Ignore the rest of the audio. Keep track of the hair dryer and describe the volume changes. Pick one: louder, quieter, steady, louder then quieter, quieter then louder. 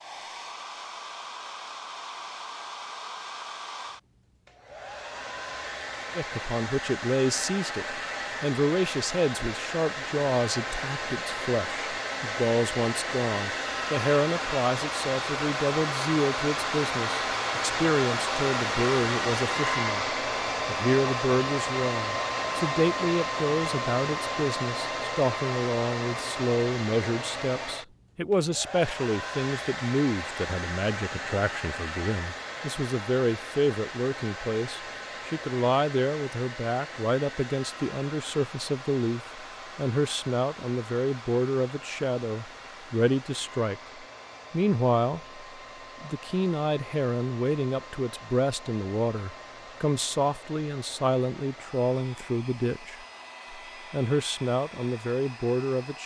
louder then quieter.